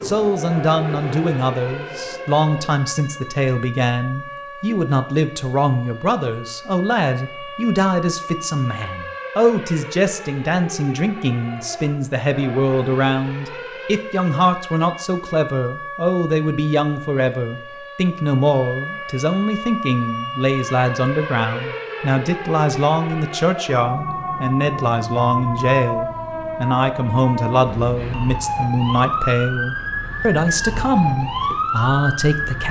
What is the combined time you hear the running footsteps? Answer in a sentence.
You can't hear the running footsteps here.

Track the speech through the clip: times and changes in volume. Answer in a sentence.
The speech can be heard from 0.0 to 32.6 s, at a steady volume.